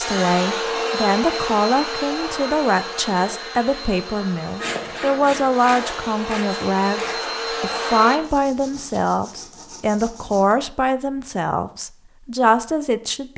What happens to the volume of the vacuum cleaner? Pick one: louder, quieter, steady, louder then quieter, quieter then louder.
quieter then louder.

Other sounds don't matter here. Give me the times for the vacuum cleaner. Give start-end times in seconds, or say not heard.
0.0-8.2.